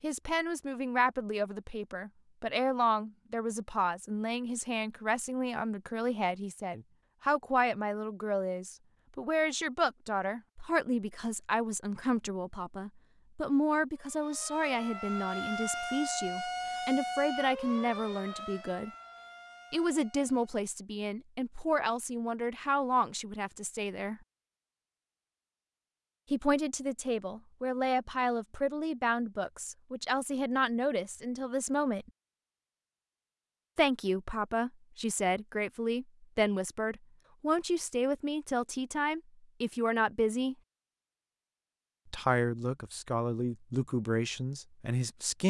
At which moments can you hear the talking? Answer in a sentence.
You can hear the talking from 0.0 to 18.9 s, from 19.7 to 24.2 s, from 26.3 to 32.1 s, from 33.8 to 40.5 s and from 42.1 to 45.4 s.